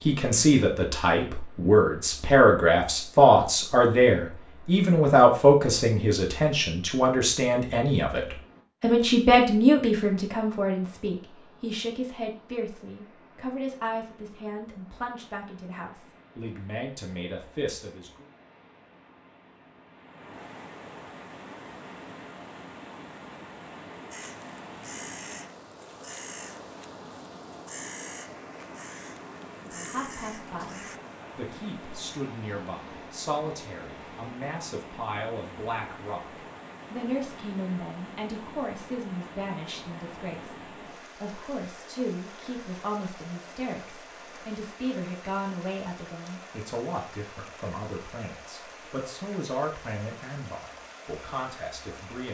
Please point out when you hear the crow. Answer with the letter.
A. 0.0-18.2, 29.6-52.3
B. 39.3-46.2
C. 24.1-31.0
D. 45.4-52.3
C.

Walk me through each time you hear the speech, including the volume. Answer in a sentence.
The speech can be heard from 0.0 to 18.2 s, getting quieter; and from 29.6 to 52.3 s, at a steady volume.